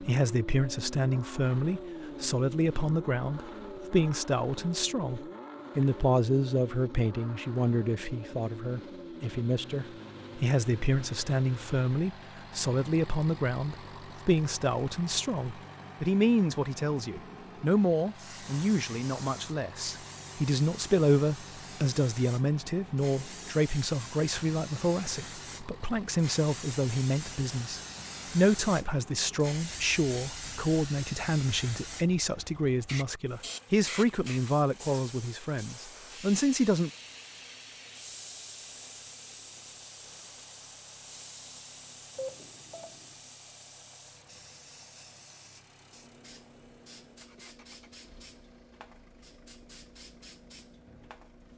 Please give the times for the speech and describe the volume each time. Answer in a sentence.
You can hear the speech from 0.0 to 36.9 s, at a steady volume.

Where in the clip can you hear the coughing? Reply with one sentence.
The coughing can't be heard in this clip.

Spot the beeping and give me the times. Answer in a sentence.
The beeping can be heard from 42.1 to 43.1 s.